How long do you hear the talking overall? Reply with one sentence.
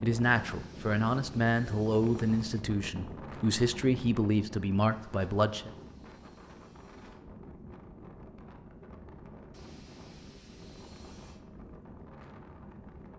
You can hear the talking for 6 seconds altogether.